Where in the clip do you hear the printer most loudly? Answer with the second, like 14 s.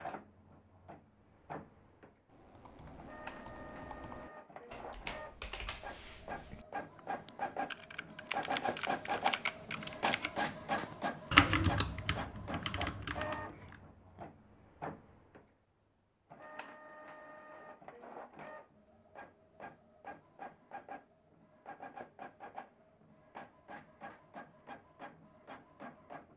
9 s.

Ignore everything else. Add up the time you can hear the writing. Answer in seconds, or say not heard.
not heard.